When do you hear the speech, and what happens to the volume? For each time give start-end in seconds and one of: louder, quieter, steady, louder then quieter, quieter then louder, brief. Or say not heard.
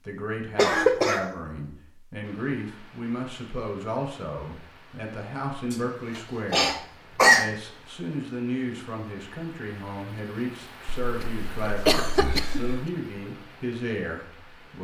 0.1-14.7 steady.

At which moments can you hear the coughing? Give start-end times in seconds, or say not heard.
0.6-1.2, 5.7-7.5, 11.0-12.8.